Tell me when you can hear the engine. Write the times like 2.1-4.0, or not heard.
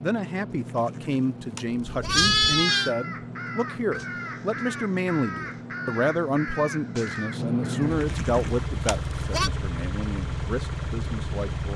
0.0-11.7.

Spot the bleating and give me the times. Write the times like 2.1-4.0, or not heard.
0.7-3.0, 7.8-9.5.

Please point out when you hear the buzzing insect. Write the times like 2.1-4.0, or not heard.
not heard.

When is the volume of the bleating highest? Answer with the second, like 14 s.
2 s.